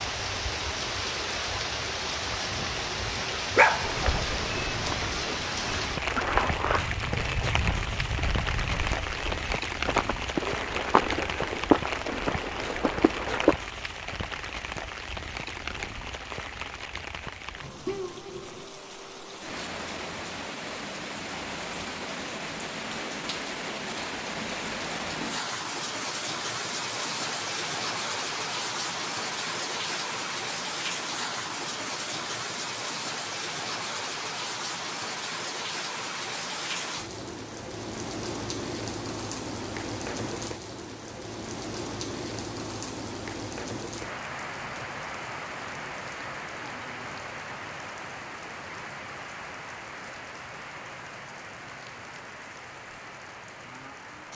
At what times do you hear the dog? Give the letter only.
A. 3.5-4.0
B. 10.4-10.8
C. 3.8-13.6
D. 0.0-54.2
A.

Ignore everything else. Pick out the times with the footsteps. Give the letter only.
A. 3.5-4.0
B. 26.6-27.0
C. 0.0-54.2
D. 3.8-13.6
D.